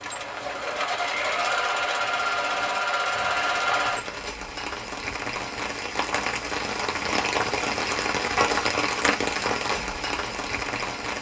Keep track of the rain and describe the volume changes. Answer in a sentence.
The volume of the rain goes up.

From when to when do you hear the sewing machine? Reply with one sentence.
You can hear the sewing machine from 0.0 to 4.2 s.